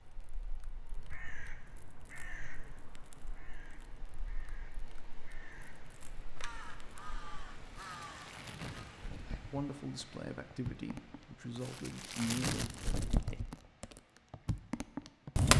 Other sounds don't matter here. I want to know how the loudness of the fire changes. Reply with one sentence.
The volume of the fire goes up.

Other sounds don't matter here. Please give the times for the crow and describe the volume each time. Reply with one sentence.
The crow can be heard from 0.7 to 9.1 s, getting quieter then louder.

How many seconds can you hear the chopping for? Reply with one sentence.
The chopping can't be heard in this clip.